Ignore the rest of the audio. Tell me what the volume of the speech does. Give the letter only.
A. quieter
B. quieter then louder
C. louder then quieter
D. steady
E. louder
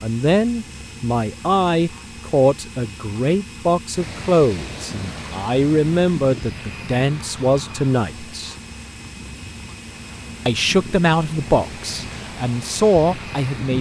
D.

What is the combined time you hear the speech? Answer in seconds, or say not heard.
12 s.